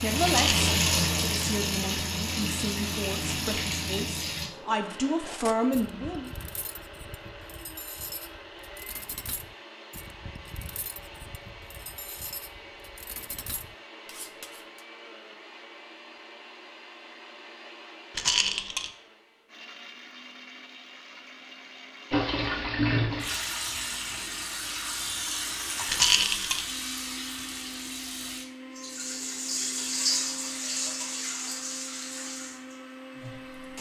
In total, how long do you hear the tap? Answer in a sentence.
The tap can be heard for 16 seconds in total.